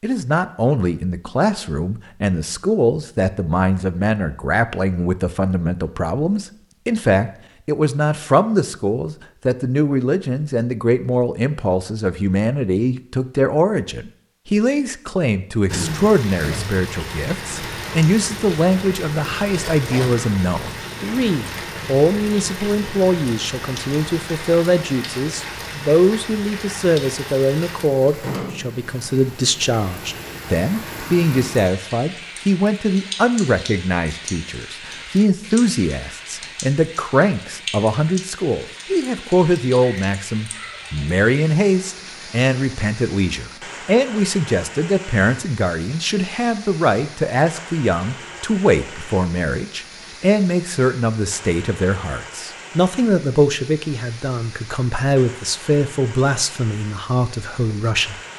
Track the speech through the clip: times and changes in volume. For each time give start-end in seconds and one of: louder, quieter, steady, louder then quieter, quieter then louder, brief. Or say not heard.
0.0-58.2 steady.